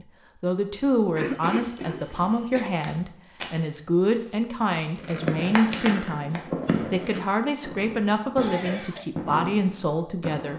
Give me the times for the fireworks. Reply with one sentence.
You can hear the fireworks from 5.0 to 10.5 s.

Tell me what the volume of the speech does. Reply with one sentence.
The loudness of the speech stays about the same.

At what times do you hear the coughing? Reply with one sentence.
The coughing can be heard from 1.1 to 2.7 s and from 8.3 to 9.1 s.